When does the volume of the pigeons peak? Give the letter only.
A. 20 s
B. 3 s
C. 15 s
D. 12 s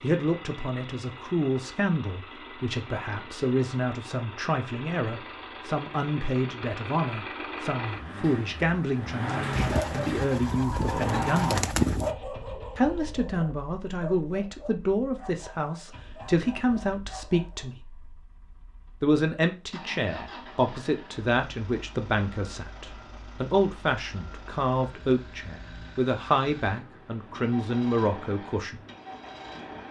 D.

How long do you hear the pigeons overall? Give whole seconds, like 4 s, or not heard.
3 s.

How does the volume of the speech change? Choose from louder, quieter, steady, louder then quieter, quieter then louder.
steady.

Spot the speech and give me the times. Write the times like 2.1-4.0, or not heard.
0.0-11.7, 12.8-17.8, 19.0-28.8.